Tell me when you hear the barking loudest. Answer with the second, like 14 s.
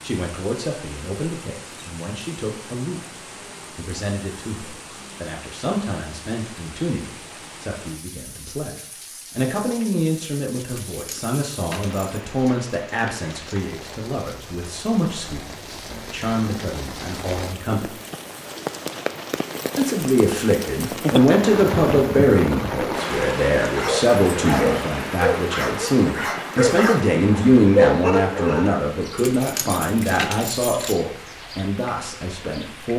28 s.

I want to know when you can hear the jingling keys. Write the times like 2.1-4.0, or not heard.
10.7-12.2, 29.1-30.9.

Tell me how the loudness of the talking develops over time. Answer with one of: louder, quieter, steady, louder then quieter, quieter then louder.
louder.